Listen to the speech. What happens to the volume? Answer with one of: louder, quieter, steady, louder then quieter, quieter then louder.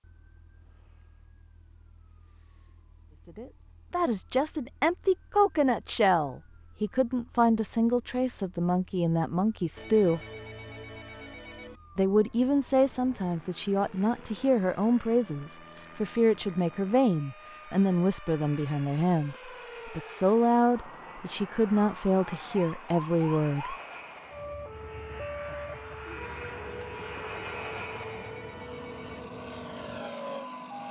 steady.